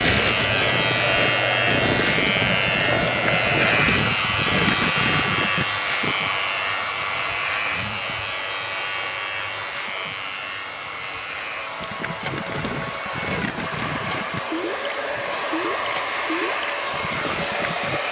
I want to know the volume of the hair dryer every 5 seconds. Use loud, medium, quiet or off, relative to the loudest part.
loud, loud, medium, loud.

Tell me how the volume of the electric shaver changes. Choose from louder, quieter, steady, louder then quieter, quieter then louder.
quieter.